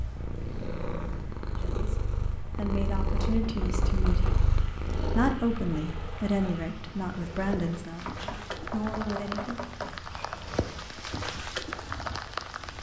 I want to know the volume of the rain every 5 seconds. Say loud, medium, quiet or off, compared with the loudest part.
quiet, medium, loud.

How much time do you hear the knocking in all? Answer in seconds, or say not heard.
3 s.